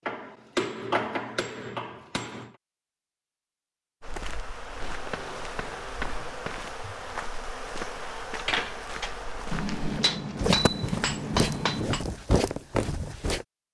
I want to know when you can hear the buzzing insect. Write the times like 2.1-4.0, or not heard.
4.0-11.6.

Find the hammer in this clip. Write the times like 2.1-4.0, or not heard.
0.1-2.5, 4.8-6.7, 9.5-12.1.